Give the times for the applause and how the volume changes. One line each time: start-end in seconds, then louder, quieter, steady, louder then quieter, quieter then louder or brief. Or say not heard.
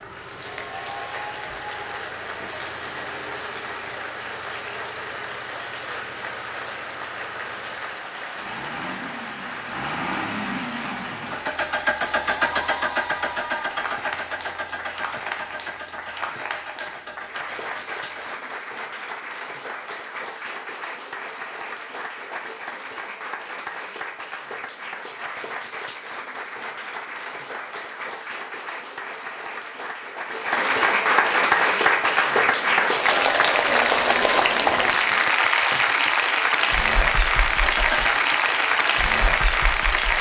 0.0-40.1 louder.